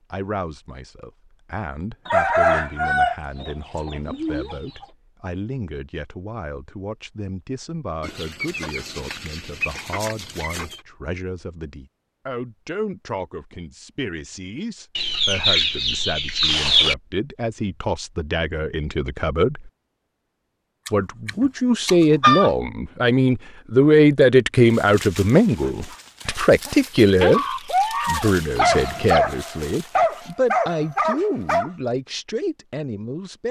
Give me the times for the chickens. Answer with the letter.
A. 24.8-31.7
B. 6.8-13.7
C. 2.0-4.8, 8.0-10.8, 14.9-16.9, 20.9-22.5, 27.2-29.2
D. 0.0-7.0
C.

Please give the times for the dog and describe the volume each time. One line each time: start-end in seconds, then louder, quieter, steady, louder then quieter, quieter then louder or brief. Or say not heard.
24.8-31.7 louder.